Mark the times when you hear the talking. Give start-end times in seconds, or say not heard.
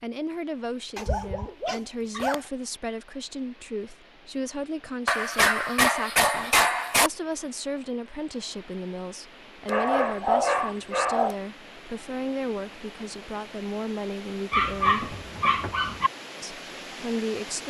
0.0-15.2, 16.4-17.6.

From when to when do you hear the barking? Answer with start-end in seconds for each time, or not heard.
0.9-2.4, 5.0-7.1, 9.7-11.3, 14.5-16.1.